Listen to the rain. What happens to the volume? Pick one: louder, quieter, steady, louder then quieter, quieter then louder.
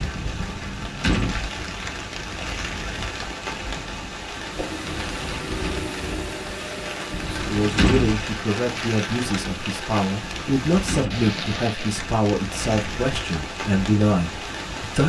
steady.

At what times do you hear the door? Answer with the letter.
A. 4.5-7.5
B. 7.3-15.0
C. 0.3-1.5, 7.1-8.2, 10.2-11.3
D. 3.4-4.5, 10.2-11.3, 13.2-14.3
C.